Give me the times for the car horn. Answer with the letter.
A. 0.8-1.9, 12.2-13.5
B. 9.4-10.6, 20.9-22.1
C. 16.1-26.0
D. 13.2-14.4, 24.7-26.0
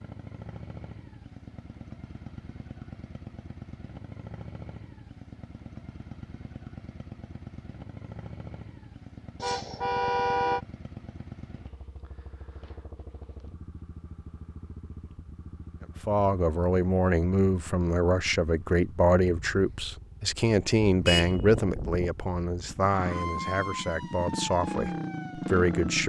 B.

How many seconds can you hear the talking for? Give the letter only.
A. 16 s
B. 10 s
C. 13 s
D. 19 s
B.